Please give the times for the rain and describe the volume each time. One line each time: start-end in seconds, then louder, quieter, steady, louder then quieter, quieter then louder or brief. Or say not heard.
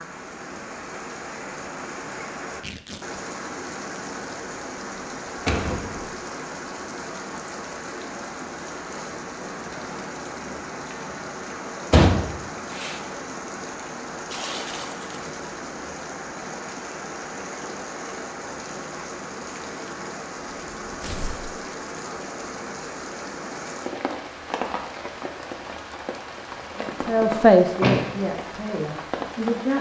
0.0-29.7 steady.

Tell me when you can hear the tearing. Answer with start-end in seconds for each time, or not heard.
2.6-3.2, 14.2-15.2, 21.0-21.6.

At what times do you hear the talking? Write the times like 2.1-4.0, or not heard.
26.8-29.7.